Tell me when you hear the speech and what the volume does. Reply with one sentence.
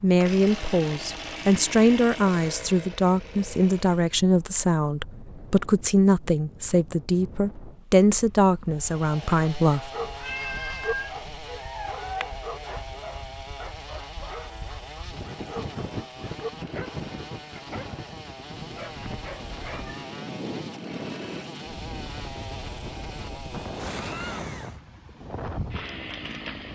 You can hear the speech from 0.0 to 9.9 s, at a steady volume.